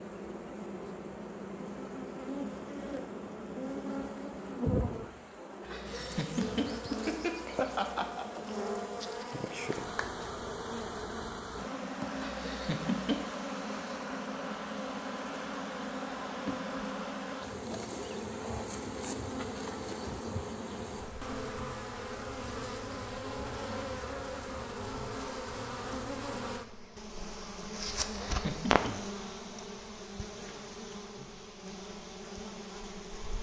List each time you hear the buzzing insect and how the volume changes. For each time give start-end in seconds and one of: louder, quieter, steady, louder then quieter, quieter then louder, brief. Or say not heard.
0.0-33.3 steady.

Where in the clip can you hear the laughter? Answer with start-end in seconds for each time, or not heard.
5.7-8.2, 12.2-13.2, 28.0-28.9.